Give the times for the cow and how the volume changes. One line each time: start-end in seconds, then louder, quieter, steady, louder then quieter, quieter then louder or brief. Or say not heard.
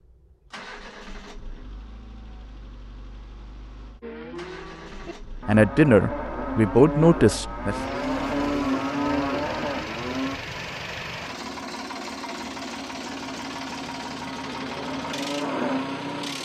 4.0-10.4 louder
14.3-16.4 brief.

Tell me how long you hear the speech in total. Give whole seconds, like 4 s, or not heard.
2 s.